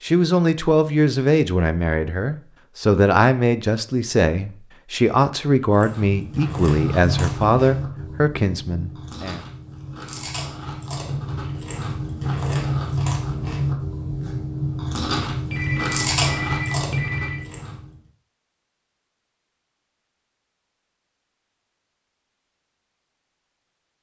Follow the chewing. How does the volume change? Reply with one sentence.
The volume of the chewing goes down, then up.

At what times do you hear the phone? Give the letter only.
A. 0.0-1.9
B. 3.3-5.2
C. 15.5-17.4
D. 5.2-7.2
C.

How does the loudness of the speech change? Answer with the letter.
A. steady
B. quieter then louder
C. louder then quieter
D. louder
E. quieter
A.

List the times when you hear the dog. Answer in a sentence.
The dog can't be heard in this clip.